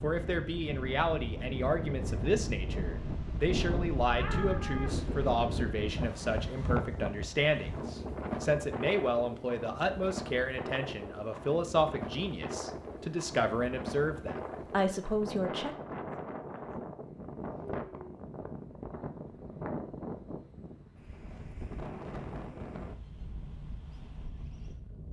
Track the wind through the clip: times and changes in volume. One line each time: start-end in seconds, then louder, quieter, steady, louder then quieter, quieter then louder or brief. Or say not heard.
0.0-25.0 quieter.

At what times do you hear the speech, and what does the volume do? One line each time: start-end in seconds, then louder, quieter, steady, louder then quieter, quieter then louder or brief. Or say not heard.
0.0-15.8 steady.